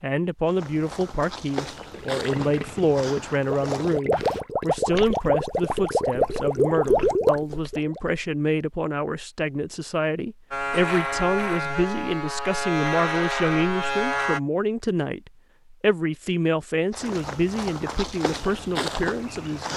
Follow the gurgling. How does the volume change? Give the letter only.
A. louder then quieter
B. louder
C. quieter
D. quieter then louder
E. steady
B.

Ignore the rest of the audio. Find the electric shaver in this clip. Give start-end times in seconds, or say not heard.
10.5-14.4.